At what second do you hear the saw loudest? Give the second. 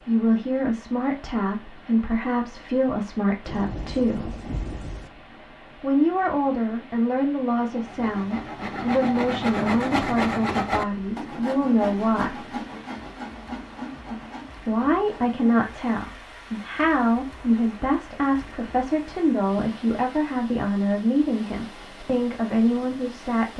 10 s.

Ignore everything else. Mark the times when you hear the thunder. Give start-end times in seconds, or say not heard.
3.5-5.1.